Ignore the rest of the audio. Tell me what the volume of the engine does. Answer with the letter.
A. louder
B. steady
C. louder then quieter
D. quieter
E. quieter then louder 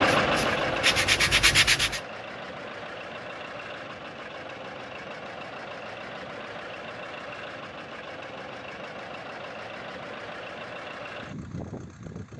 D.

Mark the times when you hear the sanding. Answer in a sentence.
The sanding can be heard from 0.2 to 2.0 s.